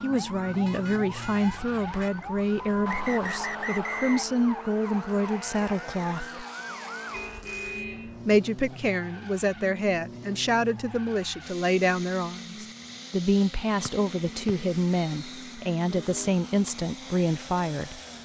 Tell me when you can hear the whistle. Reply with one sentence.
You can hear the whistle from 2.9 to 4.3 s and from 13.8 to 15.3 s.